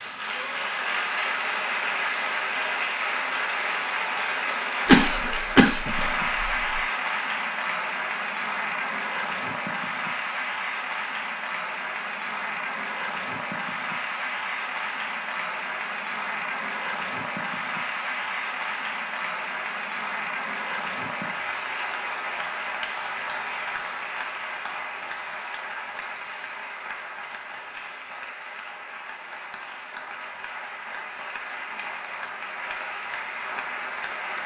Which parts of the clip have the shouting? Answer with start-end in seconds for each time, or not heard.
not heard.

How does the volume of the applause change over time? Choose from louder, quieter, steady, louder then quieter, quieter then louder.
quieter.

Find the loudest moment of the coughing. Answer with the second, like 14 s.
5 s.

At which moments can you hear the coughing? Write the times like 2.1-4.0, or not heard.
4.8-6.8.